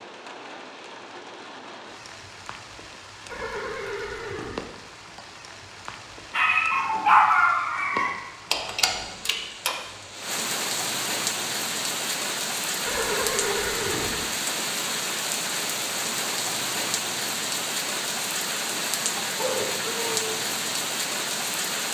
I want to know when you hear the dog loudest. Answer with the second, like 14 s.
7 s.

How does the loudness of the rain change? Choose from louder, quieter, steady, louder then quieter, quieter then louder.
louder.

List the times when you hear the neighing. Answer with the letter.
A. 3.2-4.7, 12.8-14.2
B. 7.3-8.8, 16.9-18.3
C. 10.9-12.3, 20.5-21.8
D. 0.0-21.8
A.